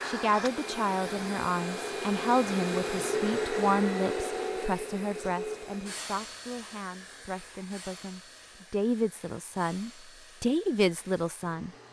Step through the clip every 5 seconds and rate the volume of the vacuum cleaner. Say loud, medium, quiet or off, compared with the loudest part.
loud, medium, quiet.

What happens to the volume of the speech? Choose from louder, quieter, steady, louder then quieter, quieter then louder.
quieter then louder.